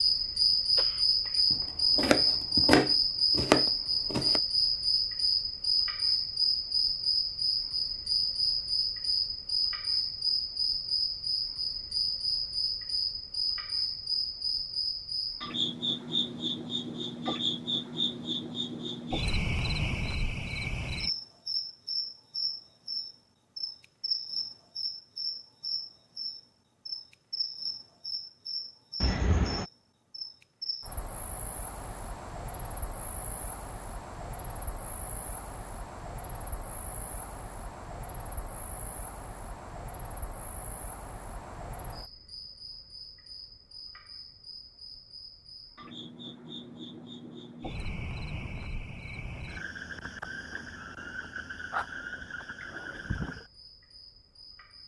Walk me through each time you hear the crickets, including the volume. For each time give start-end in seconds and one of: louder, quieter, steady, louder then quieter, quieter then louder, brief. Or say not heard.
0.0-54.8 quieter.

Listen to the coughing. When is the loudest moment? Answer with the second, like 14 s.
29 s.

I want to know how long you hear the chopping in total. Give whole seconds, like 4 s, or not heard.
3 s.